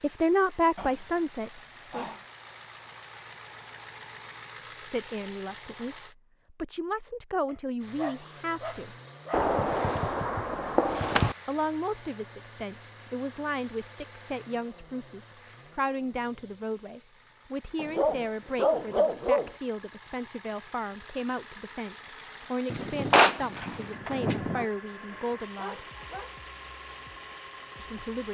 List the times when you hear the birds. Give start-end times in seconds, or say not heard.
not heard.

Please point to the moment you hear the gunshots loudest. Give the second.
23 s.